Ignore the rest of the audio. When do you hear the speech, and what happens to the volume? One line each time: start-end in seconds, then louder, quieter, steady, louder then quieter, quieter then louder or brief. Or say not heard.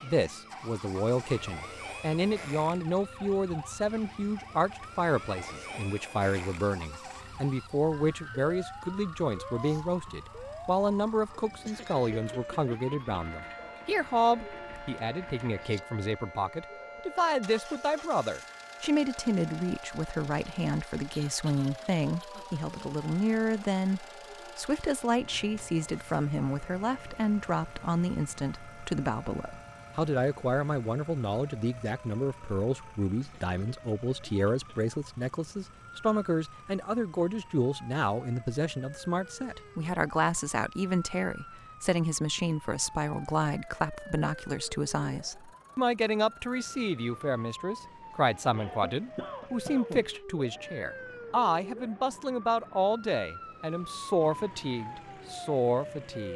0.0-56.3 steady.